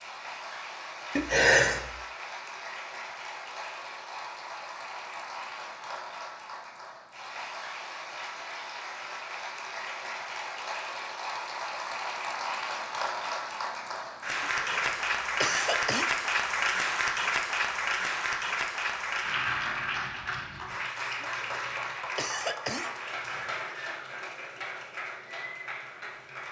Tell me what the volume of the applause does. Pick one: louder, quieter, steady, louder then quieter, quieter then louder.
louder then quieter.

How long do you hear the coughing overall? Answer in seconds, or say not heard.
4 s.